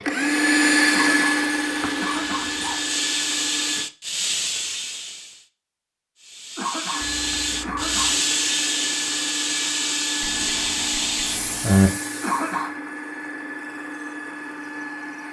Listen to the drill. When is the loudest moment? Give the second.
1 s.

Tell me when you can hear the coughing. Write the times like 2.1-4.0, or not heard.
0.9-2.8, 6.5-8.2, 12.2-12.9.